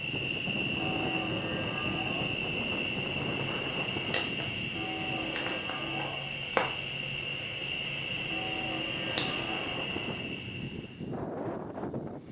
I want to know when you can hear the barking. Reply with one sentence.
The barking can't be heard in this clip.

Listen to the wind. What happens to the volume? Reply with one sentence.
The volume of the wind goes down, then up.